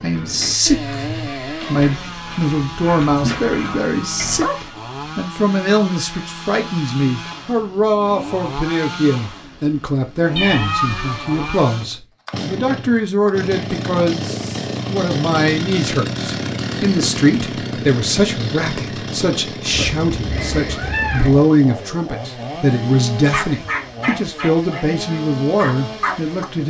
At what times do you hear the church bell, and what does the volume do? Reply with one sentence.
The church bell can't be heard in this clip.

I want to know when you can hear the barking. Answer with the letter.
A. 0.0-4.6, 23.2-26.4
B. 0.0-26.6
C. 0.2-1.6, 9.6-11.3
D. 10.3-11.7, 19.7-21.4
A.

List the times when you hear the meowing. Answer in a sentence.
You can hear the meowing from 10.3 to 11.7 s and from 19.7 to 21.4 s.